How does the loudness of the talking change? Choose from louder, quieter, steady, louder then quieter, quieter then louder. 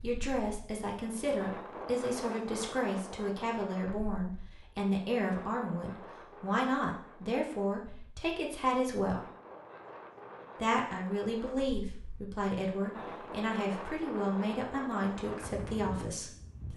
steady.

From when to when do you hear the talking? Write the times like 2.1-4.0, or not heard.
0.0-9.2, 10.6-16.7.